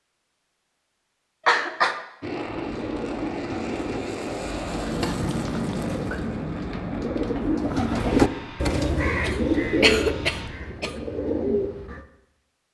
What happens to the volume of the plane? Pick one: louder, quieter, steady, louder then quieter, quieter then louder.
quieter.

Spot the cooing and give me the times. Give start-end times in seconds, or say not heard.
2.5-12.1.